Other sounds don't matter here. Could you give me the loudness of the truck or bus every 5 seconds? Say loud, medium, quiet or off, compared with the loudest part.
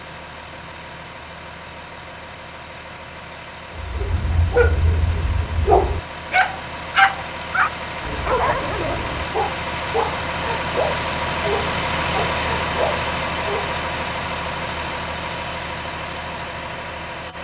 quiet, medium, loud, medium.